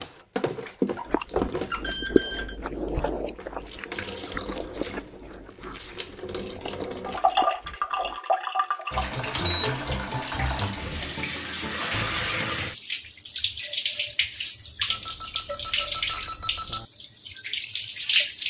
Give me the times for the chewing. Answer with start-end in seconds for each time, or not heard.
1.1-8.2.